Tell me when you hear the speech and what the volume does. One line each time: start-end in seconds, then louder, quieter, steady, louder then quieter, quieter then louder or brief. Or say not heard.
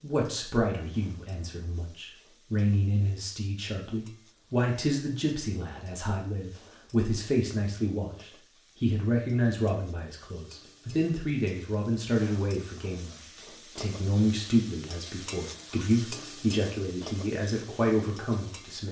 0.0-18.8 steady.